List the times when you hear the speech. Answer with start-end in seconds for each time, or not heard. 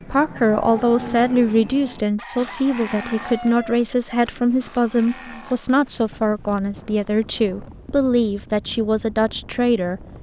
0.1-10.0.